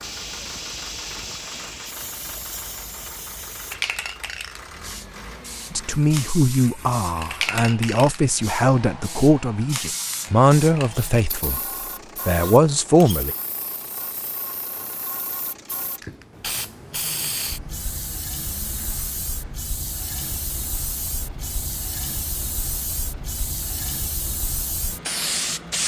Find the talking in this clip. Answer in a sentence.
You can hear the talking from 5.7 to 11.6 s and from 12.2 to 13.3 s.